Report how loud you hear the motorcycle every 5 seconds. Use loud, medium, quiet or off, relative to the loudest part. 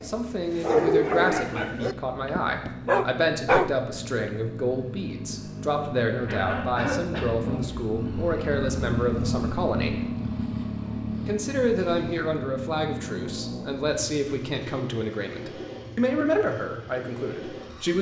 medium, loud, loud, medium.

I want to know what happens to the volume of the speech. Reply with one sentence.
The volume of the speech stays about the same.